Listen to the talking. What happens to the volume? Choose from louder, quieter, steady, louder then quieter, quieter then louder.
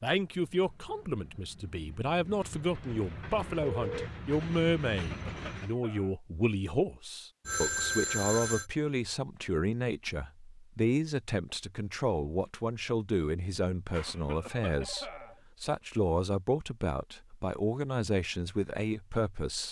steady.